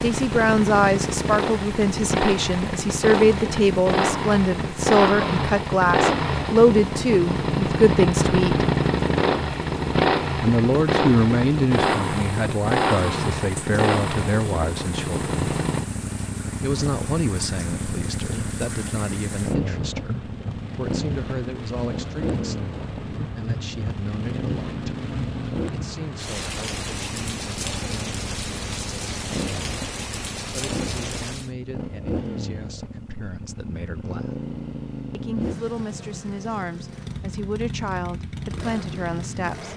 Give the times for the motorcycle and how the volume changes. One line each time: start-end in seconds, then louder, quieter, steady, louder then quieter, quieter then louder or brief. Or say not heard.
0.0-39.7 quieter.